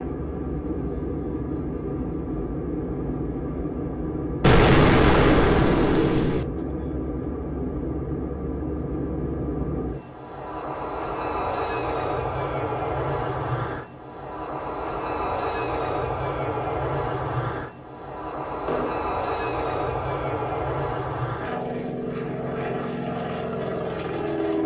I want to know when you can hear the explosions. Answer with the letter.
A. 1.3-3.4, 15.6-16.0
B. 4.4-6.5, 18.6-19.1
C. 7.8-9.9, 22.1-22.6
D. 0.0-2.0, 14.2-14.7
B.